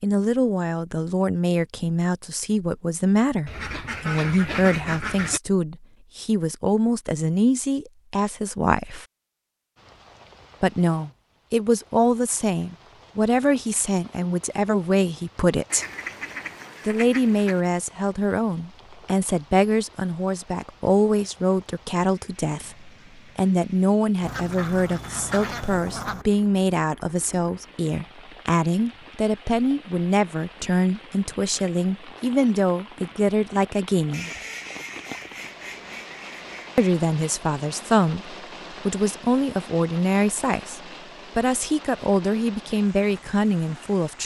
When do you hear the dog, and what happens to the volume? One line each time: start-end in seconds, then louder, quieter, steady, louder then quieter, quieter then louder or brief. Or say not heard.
not heard.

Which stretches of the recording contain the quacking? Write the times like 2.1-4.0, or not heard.
3.5-5.4, 15.7-17.6, 24.2-26.2, 34.1-36.8.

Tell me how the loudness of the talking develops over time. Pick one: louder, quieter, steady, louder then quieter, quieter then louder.
steady.